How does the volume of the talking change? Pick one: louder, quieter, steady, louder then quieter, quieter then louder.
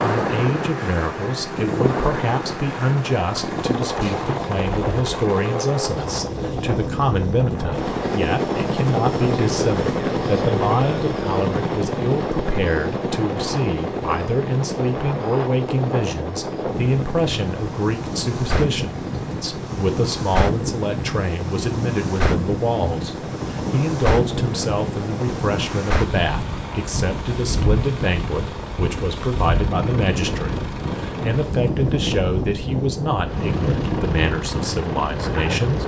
steady.